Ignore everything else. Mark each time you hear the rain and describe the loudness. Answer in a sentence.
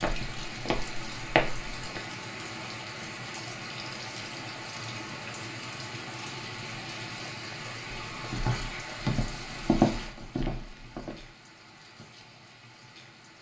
The rain can be heard from 0.0 to 13.3 s, getting quieter.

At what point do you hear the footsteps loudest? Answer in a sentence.
The loudest moment of the footsteps is at 10 seconds.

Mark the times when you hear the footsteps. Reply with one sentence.
You can hear the footsteps from 0.0 to 2.0 s and from 8.1 to 11.2 s.